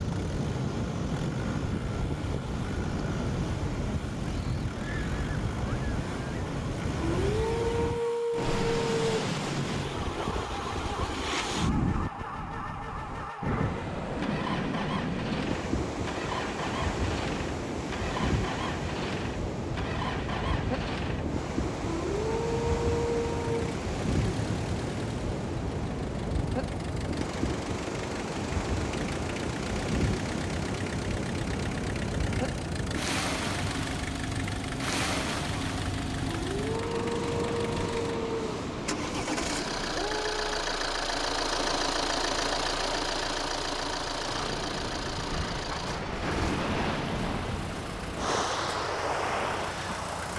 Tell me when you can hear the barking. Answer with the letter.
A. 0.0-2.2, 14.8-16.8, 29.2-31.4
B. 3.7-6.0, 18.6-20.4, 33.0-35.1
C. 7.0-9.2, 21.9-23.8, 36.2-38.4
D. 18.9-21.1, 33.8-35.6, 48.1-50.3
C.